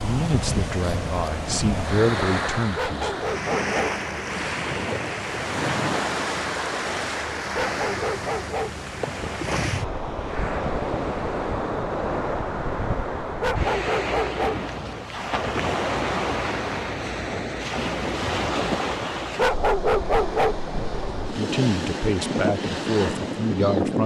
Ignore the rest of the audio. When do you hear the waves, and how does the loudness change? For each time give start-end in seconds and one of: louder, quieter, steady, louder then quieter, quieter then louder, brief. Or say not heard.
0.0-24.0 steady.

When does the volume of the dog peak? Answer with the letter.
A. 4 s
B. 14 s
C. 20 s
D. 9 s
C.